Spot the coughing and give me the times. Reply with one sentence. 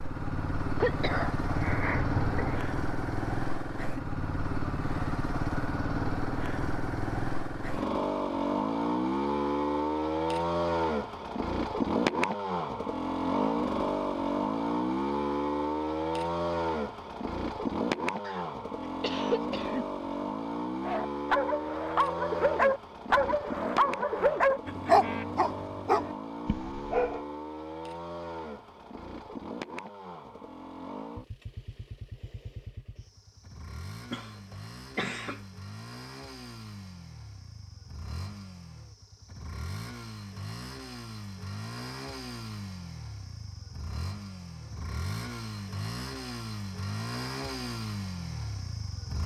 The coughing can be heard from 0.8 to 2.8 s, from 18.2 to 19.9 s and from 34.1 to 35.4 s.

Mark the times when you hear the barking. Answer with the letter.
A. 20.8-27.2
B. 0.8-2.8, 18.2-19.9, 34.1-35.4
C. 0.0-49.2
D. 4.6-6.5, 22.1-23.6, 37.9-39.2
A.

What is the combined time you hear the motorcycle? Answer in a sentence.
The motorcycle can be heard for 49 seconds in total.